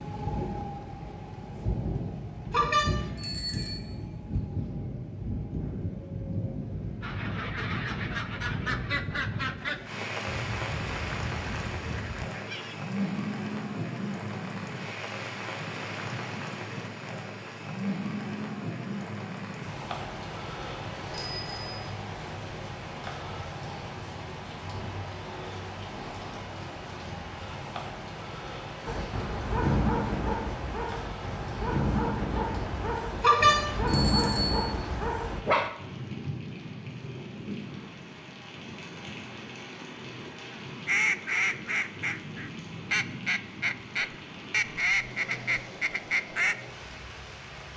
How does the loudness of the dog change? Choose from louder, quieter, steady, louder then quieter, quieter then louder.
quieter then louder.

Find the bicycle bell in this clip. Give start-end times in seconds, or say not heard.
2.5-3.8, 20.9-21.6, 33.2-34.8.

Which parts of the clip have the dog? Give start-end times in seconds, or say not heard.
28.9-35.7.